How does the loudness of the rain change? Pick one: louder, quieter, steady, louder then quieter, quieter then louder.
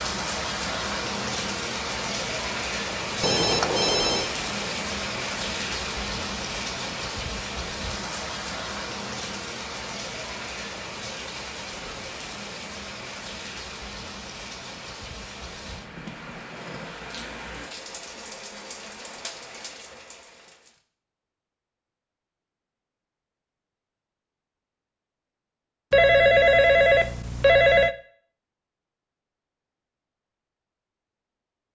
quieter.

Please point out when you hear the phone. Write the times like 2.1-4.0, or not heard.
3.2-4.3, 25.9-27.9.